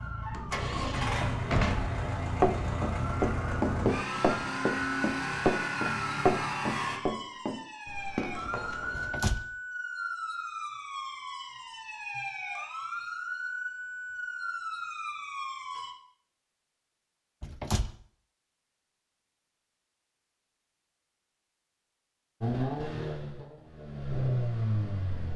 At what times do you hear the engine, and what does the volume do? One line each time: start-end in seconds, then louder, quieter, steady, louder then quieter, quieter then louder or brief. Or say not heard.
0.0-7.0 steady
22.4-25.3 brief.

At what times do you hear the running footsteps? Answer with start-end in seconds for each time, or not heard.
2.4-9.2.